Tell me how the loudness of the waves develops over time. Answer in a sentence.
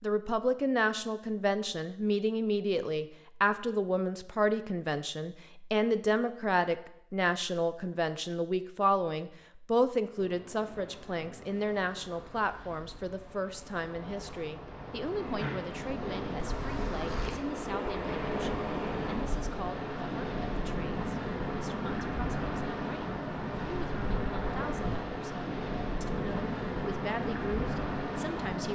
The loudness of the waves goes up.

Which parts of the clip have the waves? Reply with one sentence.
You can hear the waves from 10.1 to 28.7 s.